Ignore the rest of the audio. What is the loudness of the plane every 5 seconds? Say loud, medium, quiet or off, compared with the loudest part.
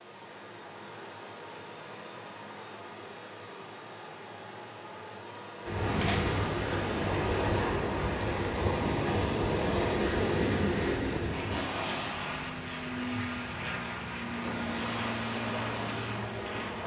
medium, loud, loud, loud.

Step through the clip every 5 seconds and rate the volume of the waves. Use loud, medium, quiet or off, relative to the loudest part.
off, loud, loud, medium.